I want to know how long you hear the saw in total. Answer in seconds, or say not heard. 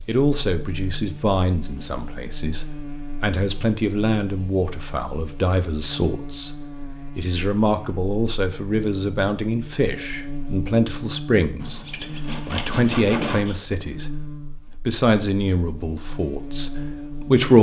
2 s.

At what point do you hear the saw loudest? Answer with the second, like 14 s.
13 s.